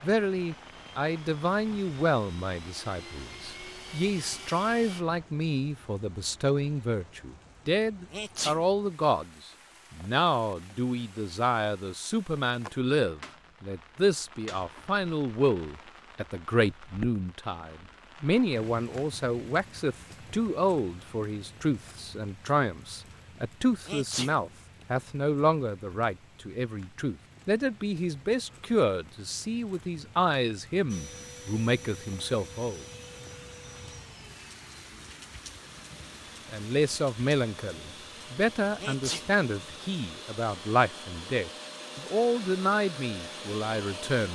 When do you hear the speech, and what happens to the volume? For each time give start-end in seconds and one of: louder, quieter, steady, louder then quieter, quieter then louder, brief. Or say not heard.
0.0-32.9 steady
36.5-44.3 steady.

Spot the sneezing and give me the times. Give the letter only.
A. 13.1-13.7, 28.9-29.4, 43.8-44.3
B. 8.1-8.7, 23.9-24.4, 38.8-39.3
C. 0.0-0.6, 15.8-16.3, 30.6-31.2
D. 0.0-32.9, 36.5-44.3
B.